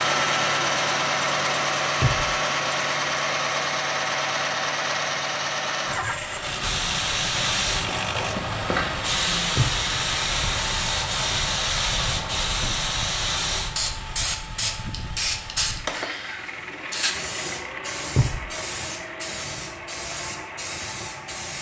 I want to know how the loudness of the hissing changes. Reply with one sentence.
The volume of the hissing goes down.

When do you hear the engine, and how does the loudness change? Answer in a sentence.
The engine can be heard from 0.0 to 21.5 s, getting quieter.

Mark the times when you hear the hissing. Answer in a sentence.
The hissing can be heard from 6.6 to 21.5 s.